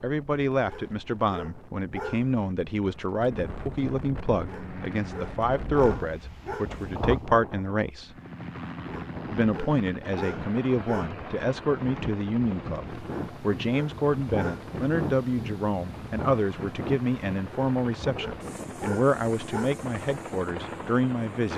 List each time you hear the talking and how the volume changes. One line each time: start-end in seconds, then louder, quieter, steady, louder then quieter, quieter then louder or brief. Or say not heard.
0.0-8.1 steady
9.3-21.5 steady.